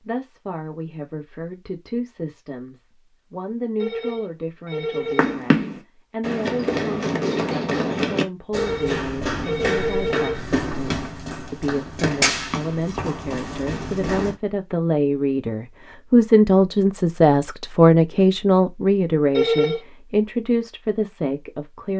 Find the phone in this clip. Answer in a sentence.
The phone can be heard from 3.8 to 5.4 s, from 8.6 to 10.4 s and from 19.4 to 19.8 s.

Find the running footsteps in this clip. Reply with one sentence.
You can hear the running footsteps from 5.0 to 14.3 s.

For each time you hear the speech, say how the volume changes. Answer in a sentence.
You can hear the speech from 0.0 to 21.9 s, getting louder.